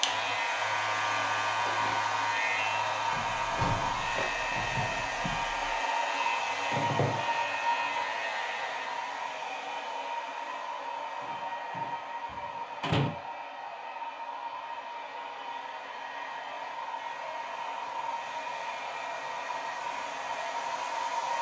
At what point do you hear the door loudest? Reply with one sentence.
The volume of the door peaks at 13 seconds.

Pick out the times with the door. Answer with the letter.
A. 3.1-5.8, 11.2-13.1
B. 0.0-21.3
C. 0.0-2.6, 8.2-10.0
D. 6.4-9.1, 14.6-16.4
A.